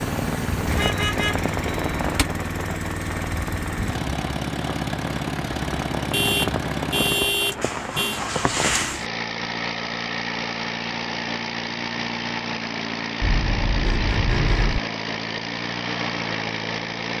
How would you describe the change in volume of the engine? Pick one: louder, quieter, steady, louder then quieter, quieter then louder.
steady.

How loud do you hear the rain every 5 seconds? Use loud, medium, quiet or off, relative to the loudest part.
loud, loud, off, off.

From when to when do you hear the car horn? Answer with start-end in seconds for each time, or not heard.
0.8-2.2, 6.1-8.2, 13.2-14.8.